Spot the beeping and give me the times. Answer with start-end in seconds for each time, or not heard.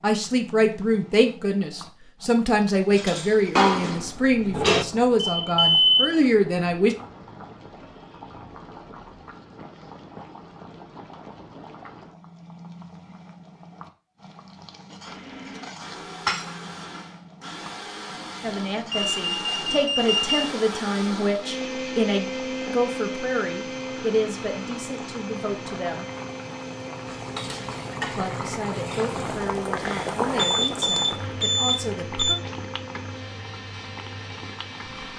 5.4-6.2, 18.9-20.4, 30.4-32.4.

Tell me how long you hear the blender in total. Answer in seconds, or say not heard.
20 s.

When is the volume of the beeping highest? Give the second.
6 s.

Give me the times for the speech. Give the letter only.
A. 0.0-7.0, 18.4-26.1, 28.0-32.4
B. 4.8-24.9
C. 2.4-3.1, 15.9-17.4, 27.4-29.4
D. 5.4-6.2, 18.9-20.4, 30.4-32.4
A.